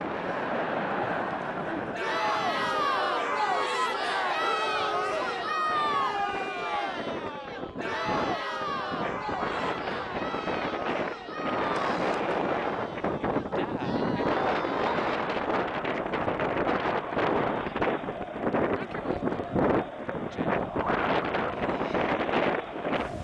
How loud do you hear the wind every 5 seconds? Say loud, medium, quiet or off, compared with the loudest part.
medium, medium, loud, loud, loud.